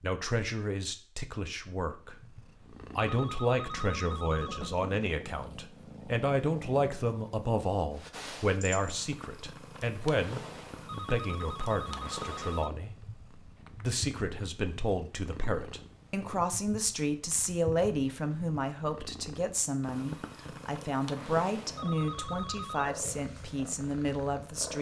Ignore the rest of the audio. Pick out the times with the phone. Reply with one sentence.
The phone can be heard from 3.0 to 4.8 s, from 10.8 to 12.7 s and from 21.8 to 22.9 s.